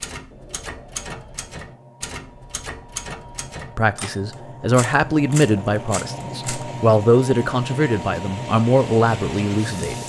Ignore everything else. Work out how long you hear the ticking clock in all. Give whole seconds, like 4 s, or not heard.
not heard.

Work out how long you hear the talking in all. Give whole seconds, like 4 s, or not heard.
6 s.